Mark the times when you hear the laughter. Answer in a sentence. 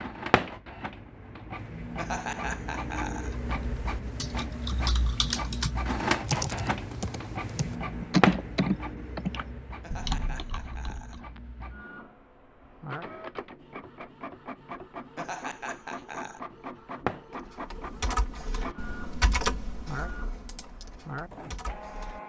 You can hear the laughter from 1.9 to 3.8 s, from 9.8 to 11.4 s and from 15.2 to 16.4 s.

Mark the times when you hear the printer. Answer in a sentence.
You can hear the printer from 0.0 to 22.2 s.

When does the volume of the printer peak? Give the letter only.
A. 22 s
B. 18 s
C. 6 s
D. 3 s
C.